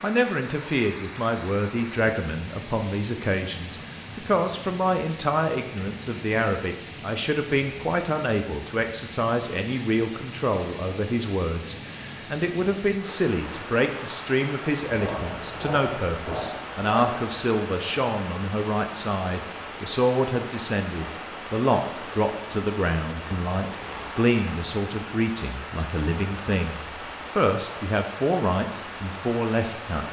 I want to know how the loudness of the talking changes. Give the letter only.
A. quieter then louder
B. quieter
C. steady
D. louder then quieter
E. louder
C.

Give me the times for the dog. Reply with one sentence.
You can hear the dog from 14.9 to 17.4 s.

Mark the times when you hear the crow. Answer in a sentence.
The crow can't be heard in this clip.